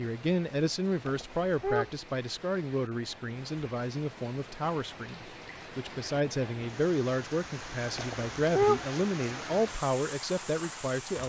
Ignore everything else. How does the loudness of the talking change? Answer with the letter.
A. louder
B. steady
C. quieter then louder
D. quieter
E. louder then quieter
B.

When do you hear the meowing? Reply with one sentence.
The meowing can be heard from 1.1 to 1.9 s and from 8.0 to 8.8 s.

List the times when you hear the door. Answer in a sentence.
The door can't be heard in this clip.